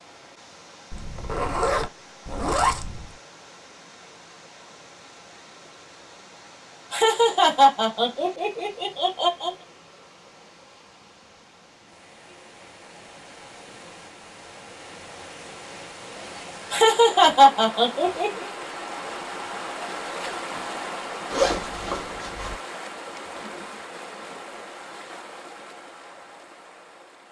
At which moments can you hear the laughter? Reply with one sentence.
You can hear the laughter from 6.9 to 9.5 s and from 16.7 to 18.5 s.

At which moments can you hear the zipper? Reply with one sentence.
You can hear the zipper from 0.9 to 3.1 s and from 21.3 to 22.6 s.